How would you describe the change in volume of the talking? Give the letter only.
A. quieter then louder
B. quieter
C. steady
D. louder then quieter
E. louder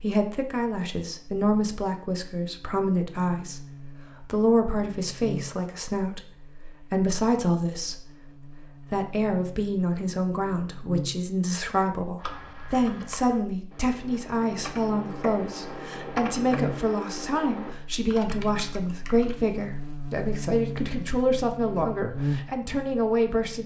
C.